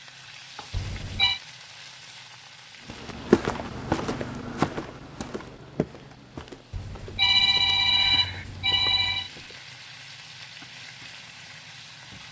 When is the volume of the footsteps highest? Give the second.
3 s.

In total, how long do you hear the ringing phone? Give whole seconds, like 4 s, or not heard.
3 s.